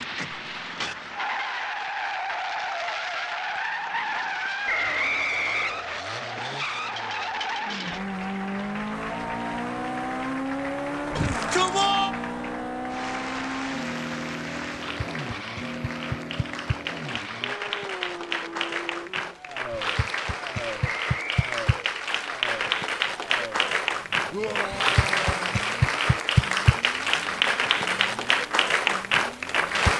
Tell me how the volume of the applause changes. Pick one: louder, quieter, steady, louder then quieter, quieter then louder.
louder.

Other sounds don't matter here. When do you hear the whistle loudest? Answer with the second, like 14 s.
5 s.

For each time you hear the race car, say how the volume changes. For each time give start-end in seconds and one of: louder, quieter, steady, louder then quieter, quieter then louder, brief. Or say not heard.
0.0-29.9 quieter.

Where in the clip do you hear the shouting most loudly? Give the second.
12 s.